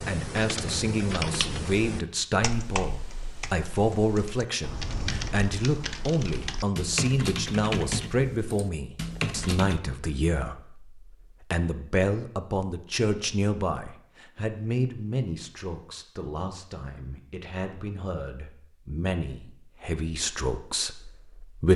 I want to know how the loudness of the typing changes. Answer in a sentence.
The loudness of the typing goes down, then up.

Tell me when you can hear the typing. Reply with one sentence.
The typing can be heard from 0.0 to 9.8 s.